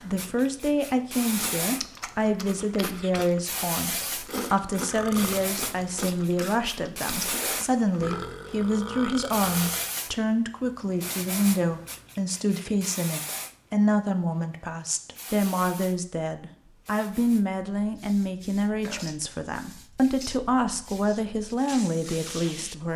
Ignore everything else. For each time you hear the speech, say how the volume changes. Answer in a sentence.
You can hear the speech from 0.0 to 22.9 s, at a steady volume.